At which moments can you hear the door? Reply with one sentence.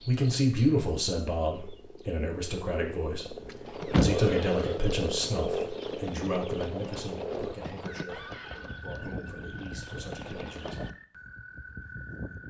You can hear the door from 3.5 to 4.7 s.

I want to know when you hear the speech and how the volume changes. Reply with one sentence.
The speech can be heard from 0.1 to 10.8 s, getting quieter.